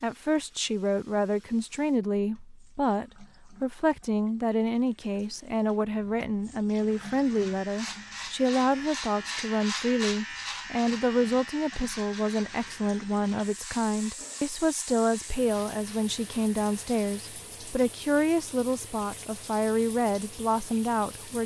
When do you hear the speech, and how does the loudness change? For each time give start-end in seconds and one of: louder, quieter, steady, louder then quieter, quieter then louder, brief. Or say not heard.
0.0-21.4 steady.